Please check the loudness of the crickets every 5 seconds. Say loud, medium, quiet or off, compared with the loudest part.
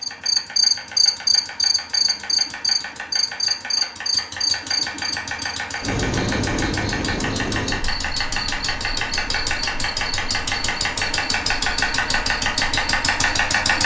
loud, medium, quiet.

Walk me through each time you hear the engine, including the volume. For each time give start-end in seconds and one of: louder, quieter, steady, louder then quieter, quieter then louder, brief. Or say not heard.
0.0-13.8 louder.